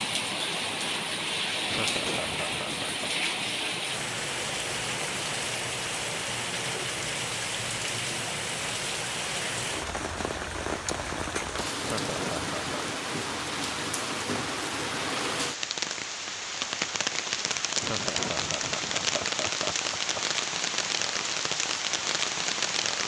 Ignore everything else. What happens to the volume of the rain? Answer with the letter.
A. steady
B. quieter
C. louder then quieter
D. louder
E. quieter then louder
A.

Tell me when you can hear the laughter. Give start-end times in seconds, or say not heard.
1.6-3.1, 11.8-13.1, 17.8-20.2.